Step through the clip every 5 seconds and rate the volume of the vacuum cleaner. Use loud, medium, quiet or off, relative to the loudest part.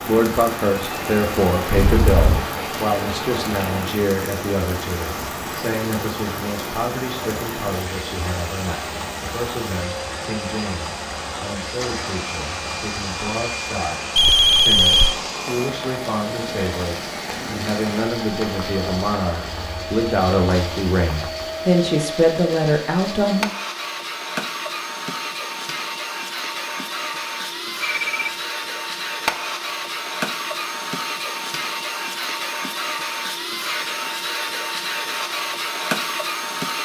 medium, medium, medium, medium, loud, loud, loud, loud.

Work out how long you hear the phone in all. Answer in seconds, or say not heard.
2 s.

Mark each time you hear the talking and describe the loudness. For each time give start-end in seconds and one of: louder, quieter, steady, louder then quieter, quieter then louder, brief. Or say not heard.
0.1-23.5 quieter then louder.